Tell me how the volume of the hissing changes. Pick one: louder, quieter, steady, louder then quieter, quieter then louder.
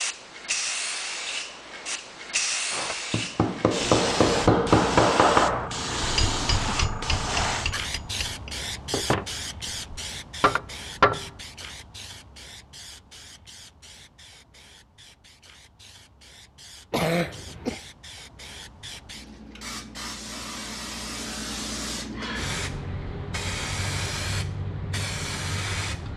quieter then louder.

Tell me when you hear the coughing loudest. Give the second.
17 s.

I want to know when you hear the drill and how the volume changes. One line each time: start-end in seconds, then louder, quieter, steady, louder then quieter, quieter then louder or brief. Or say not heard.
not heard.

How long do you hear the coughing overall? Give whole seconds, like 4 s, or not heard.
2 s.